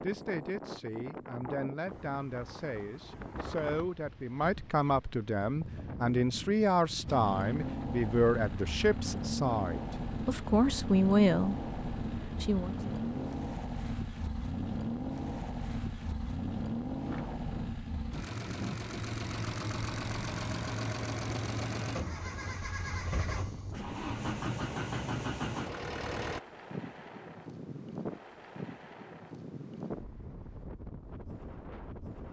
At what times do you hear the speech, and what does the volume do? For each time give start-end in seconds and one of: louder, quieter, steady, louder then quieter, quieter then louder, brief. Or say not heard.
0.0-12.8 louder.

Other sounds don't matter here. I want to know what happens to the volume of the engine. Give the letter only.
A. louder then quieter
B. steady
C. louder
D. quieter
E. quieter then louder
B.